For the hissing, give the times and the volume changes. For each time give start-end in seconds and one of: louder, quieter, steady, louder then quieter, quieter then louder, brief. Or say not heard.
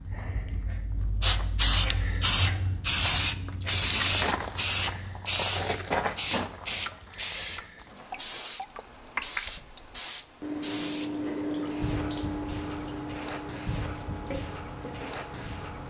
0.0-15.8 quieter.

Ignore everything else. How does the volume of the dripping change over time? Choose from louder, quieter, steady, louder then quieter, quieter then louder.
louder then quieter.